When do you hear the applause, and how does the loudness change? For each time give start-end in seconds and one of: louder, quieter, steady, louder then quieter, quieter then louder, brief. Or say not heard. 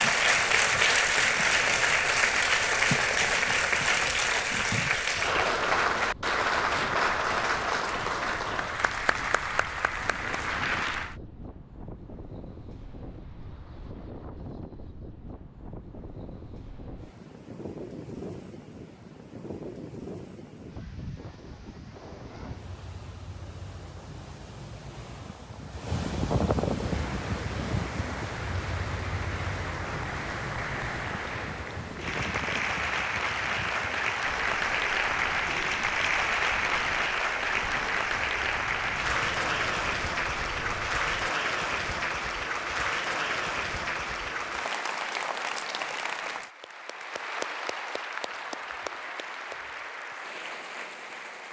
0.0-11.2 quieter
26.7-51.4 louder then quieter.